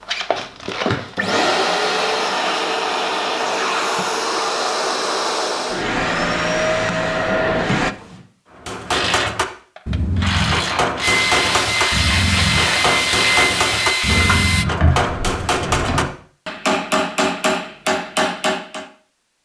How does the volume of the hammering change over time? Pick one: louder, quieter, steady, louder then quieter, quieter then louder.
steady.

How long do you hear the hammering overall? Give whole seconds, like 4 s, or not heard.
10 s.